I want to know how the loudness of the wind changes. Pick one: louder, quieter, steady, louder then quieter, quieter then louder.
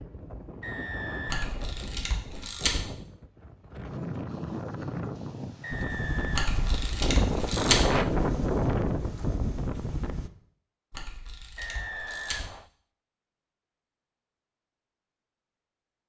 louder.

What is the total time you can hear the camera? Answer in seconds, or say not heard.
5 s.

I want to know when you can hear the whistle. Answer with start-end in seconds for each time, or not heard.
0.6-1.7, 5.6-6.8, 11.6-12.7.